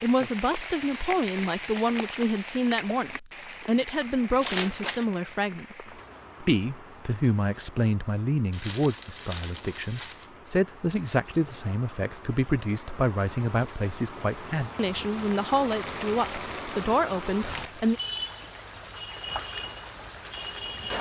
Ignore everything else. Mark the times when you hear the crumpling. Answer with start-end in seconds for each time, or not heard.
4.4-5.0, 8.5-10.3, 15.2-16.9.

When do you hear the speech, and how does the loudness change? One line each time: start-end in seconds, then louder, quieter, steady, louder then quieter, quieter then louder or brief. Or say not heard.
0.0-18.0 steady.